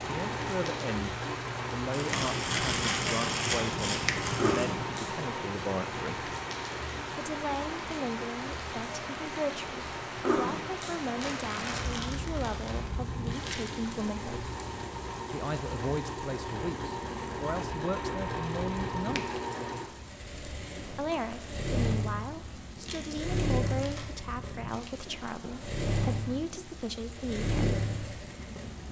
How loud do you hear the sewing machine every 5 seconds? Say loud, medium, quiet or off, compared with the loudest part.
loud, medium, medium, loud, loud, loud.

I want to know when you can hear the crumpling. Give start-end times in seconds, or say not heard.
1.9-4.7, 11.2-13.8, 22.8-24.8.